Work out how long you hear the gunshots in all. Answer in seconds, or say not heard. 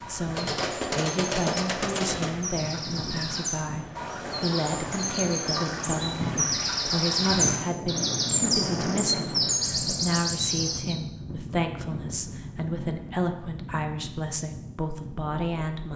2 s.